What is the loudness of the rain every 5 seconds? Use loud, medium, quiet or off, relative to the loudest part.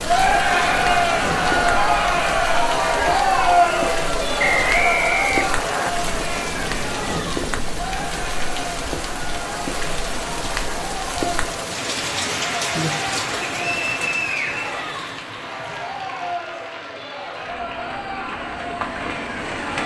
loud, loud, loud, medium.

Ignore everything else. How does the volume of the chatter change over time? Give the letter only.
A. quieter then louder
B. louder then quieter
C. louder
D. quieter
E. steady
D.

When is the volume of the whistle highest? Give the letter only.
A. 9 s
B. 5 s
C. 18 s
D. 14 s
B.